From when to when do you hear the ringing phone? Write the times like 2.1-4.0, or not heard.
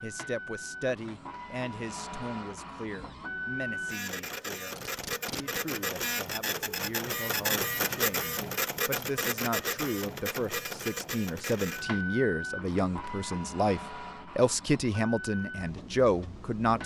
not heard.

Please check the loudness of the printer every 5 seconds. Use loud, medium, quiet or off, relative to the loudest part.
medium, loud, medium, medium.